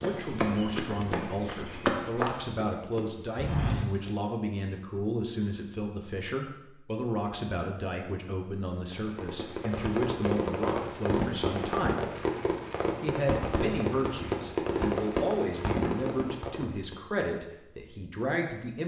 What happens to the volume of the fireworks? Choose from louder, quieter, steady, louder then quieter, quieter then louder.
steady.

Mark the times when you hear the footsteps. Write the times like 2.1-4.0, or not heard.
0.0-4.1.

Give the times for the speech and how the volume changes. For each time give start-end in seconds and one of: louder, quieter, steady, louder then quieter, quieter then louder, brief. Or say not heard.
0.0-12.1 steady
13.0-18.8 steady.